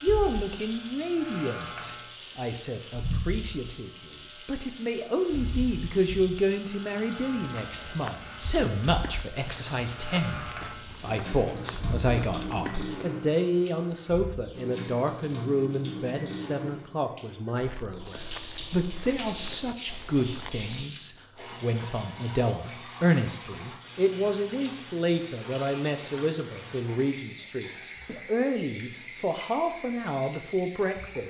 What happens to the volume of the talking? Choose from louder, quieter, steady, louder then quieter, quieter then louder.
steady.